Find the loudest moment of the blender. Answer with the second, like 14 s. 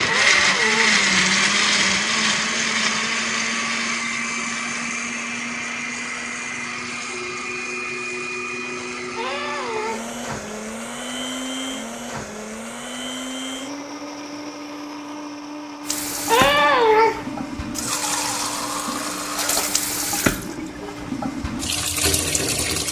1 s.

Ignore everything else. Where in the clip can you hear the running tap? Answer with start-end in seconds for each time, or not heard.
15.8-22.8.